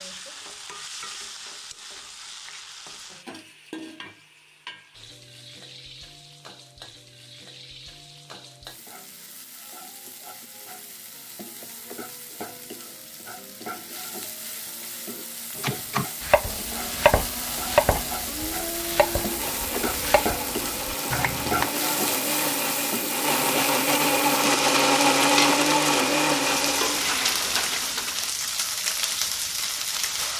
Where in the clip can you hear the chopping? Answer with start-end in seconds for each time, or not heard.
15.6-21.7.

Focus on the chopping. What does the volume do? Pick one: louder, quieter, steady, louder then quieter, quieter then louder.
louder then quieter.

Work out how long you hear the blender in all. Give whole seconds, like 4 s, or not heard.
12 s.